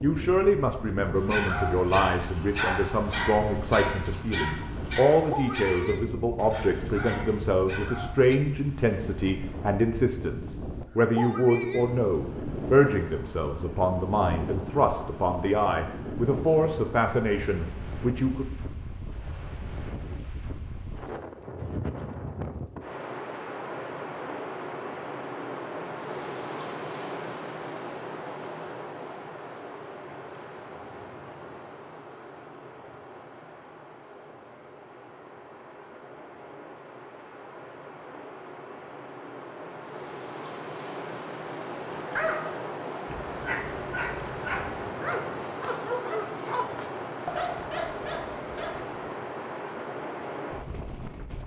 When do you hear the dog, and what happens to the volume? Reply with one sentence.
The dog can be heard from 1.1 to 8.4 s, getting quieter; and from 41.9 to 49.1 s, at a steady volume.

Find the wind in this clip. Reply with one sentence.
You can hear the wind from 0.0 to 51.4 s.